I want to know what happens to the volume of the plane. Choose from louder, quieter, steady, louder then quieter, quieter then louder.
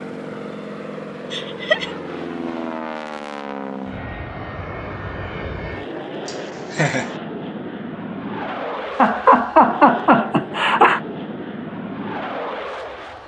steady.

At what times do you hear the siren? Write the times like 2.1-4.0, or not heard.
not heard.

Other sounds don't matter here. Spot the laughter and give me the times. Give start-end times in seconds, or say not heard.
1.3-1.9, 6.2-7.1, 8.9-11.0.